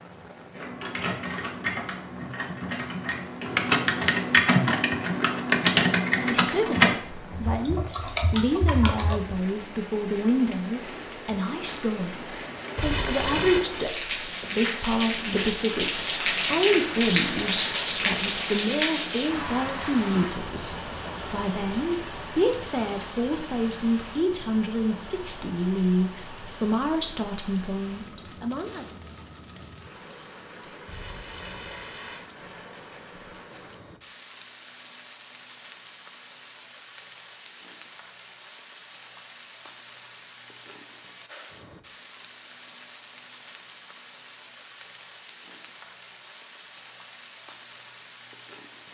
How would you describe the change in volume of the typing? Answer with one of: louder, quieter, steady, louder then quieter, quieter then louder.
louder then quieter.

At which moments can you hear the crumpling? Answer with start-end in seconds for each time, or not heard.
12.8-13.7, 30.9-32.2.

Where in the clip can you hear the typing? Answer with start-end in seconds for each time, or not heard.
0.5-9.3.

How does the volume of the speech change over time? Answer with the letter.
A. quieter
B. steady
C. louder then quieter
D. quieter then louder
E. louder
B.